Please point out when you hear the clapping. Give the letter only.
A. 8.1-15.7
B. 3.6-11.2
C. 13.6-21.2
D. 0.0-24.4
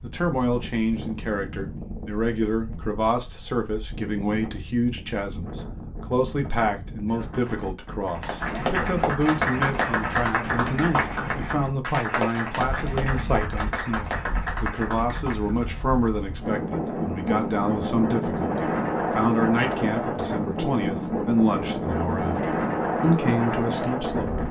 A.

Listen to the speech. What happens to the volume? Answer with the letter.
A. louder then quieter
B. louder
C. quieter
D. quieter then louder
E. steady
E.